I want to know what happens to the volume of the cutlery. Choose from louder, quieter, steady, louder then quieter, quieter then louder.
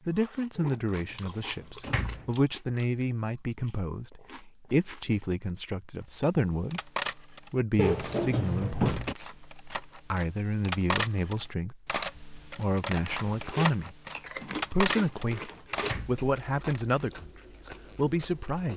quieter then louder.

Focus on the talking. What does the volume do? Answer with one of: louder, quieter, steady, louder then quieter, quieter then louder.
steady.